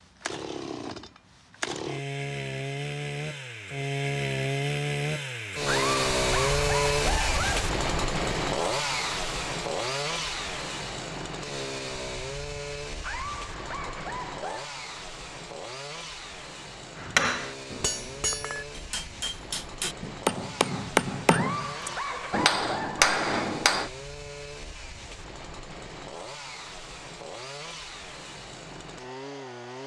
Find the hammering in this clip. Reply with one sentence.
The hammering can be heard from 17.0 to 23.9 s.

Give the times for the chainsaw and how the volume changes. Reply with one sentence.
The chainsaw can be heard from 0.0 to 29.8 s, getting quieter.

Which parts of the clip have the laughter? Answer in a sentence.
The laughter can be heard from 5.7 to 7.7 s, from 13.0 to 14.8 s and from 21.3 to 23.1 s.